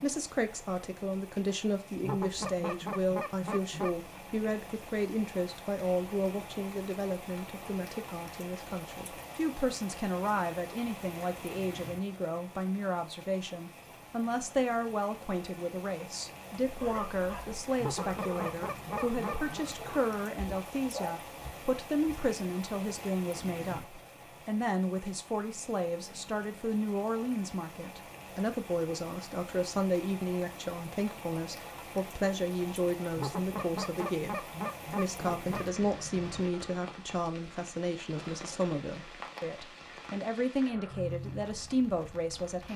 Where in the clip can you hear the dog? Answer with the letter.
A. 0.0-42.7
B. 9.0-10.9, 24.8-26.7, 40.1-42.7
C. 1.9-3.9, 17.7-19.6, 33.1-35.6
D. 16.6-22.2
D.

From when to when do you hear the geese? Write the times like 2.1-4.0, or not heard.
1.9-3.9, 17.7-19.6, 33.1-35.6.